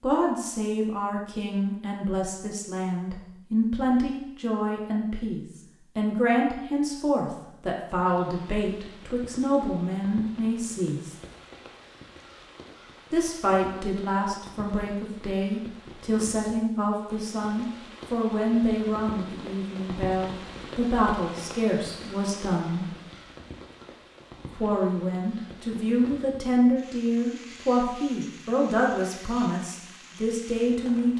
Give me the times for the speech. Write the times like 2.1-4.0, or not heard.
0.0-11.2, 13.1-22.9, 24.5-31.1.